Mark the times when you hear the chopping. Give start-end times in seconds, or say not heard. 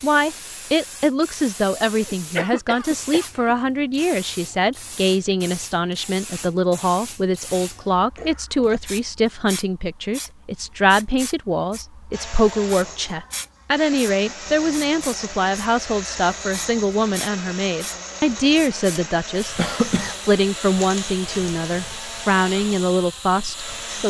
not heard.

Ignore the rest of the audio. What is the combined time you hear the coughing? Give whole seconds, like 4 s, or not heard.
3 s.